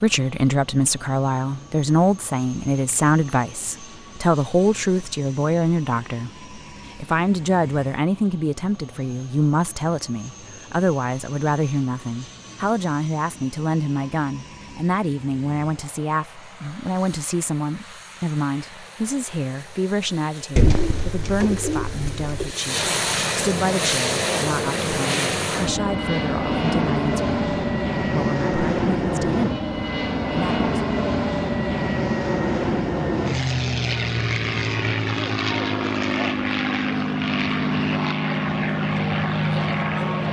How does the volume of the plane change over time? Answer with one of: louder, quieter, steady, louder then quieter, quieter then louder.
louder.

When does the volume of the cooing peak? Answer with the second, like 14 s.
21 s.